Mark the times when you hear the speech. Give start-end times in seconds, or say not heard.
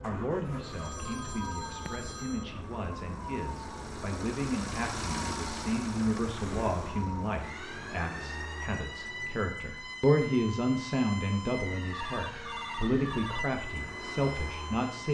0.0-15.0.